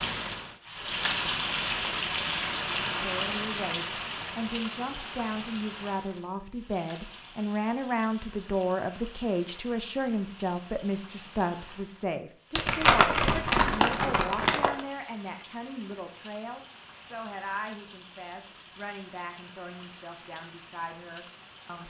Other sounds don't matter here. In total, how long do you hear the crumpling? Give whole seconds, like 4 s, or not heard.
4 s.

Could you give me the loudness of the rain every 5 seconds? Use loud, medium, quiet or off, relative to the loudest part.
loud, quiet, quiet, quiet, quiet.